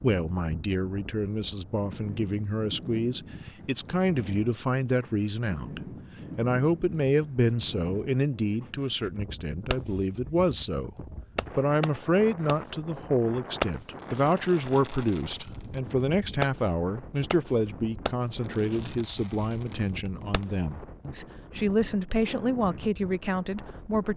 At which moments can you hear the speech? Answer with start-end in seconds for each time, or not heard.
0.0-10.9, 11.6-24.1.